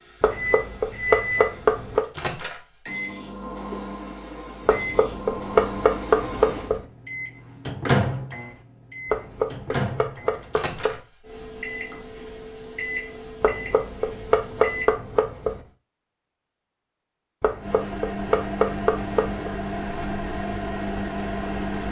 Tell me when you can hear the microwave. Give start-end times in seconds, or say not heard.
0.0-14.9, 17.6-21.8.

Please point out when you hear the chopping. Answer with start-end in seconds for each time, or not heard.
0.2-2.0, 4.7-6.8, 9.1-11.0, 13.4-15.6, 17.4-19.5.